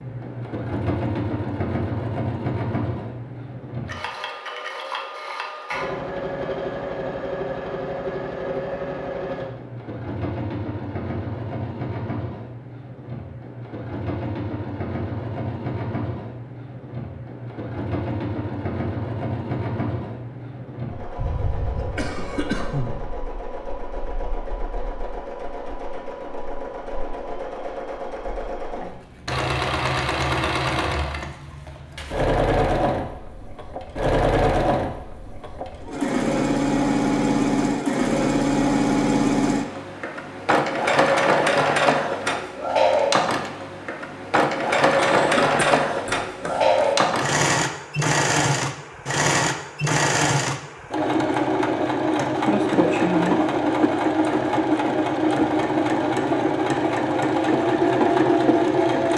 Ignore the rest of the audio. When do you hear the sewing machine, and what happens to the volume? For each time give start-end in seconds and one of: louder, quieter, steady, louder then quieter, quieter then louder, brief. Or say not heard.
0.0-59.1 louder.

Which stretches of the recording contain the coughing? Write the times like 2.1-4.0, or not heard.
21.1-23.0, 45.0-47.0.